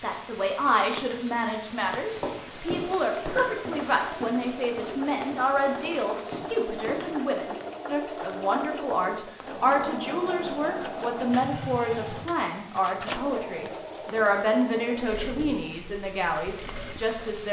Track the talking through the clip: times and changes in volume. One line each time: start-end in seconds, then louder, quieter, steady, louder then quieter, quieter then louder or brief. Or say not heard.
0.0-17.4 steady.